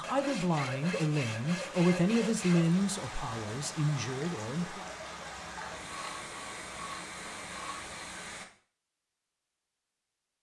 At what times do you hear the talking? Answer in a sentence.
You can hear the talking from 0.0 to 4.8 s.